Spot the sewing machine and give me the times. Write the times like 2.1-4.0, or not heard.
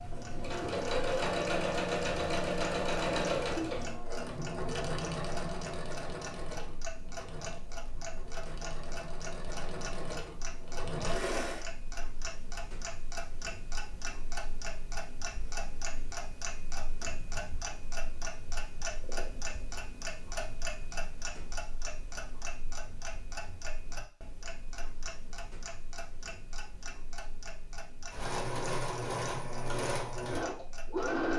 0.0-11.7, 28.1-31.3.